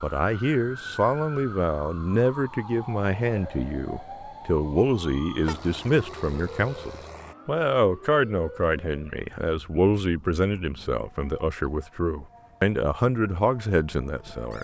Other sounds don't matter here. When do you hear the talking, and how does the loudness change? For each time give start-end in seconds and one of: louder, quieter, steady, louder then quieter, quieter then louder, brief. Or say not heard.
0.0-14.5 steady.